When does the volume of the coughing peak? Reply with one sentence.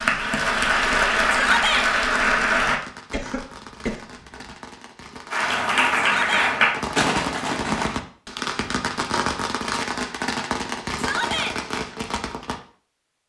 The volume of the coughing peaks at 7 seconds.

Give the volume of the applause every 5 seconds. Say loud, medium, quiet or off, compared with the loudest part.
loud, loud, off.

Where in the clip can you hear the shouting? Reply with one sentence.
The shouting can be heard from 1.3 to 1.9 s, from 6.0 to 6.5 s and from 10.9 to 11.6 s.